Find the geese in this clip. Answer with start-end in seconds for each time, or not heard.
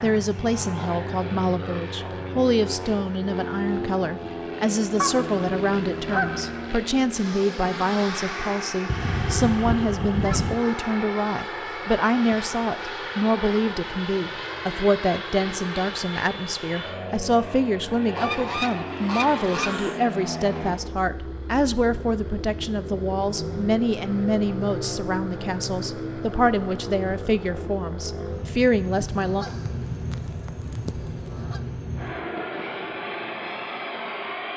5.0-6.8, 8.8-10.7, 18.1-20.0, 28.9-31.6.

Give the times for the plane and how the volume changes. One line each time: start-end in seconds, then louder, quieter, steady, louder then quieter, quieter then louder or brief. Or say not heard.
0.0-34.5 steady.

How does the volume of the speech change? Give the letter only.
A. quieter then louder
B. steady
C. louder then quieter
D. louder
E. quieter
B.